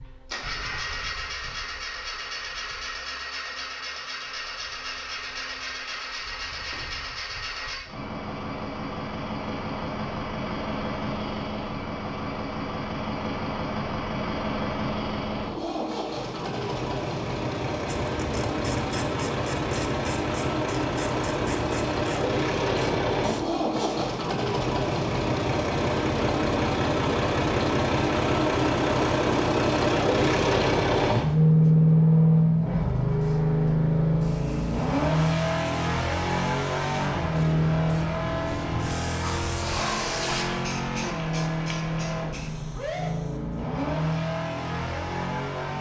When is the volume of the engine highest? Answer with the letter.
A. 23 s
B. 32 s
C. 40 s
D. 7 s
B.